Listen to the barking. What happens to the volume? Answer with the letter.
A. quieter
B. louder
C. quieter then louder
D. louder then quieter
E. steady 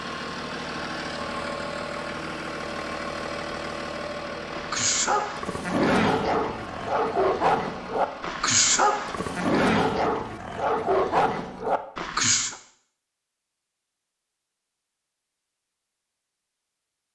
E.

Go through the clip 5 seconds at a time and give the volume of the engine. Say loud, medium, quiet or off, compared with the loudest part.
loud, medium, off, off.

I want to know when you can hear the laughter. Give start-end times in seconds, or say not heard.
not heard.